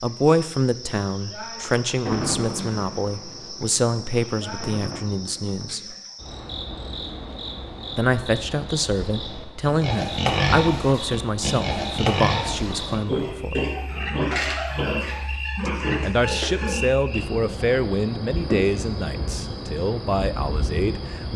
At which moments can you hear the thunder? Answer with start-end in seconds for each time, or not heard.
1.9-5.8.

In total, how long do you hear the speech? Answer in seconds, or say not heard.
17 s.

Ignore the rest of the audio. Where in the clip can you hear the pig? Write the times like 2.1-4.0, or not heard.
9.7-16.9.